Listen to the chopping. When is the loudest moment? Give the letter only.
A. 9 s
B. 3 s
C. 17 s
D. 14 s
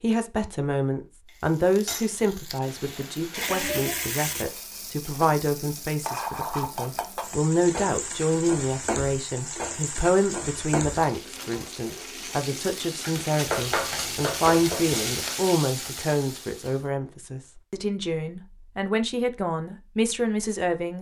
D.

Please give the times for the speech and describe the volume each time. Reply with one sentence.
The speech can be heard from 0.0 to 20.9 s, at a steady volume.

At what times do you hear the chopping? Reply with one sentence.
You can hear the chopping from 13.4 to 15.0 s.